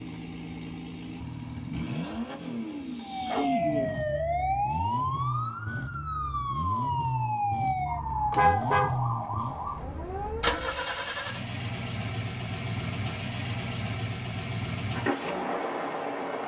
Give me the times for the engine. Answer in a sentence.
You can hear the engine from 0.0 to 16.4 s.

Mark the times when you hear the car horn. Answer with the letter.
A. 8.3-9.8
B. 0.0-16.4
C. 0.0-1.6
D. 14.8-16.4
A.